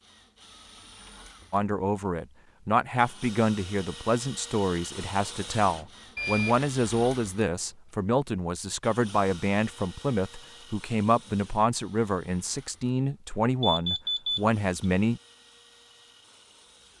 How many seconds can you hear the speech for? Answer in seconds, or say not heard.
14 s.